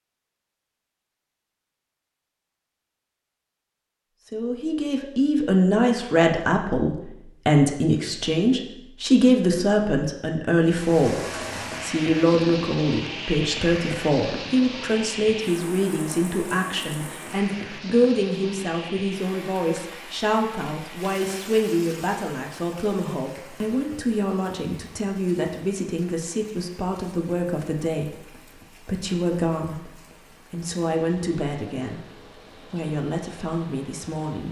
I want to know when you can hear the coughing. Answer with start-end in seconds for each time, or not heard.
not heard.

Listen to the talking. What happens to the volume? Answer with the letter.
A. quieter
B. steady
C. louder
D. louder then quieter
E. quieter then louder
A.